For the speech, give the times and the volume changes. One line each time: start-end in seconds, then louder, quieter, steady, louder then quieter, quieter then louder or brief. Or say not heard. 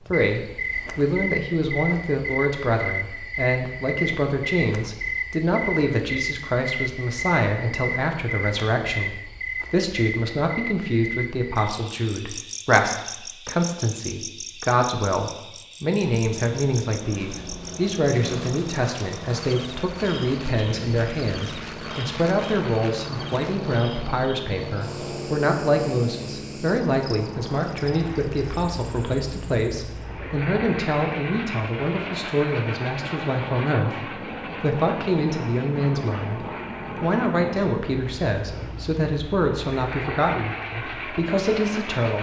0.1-42.1 steady.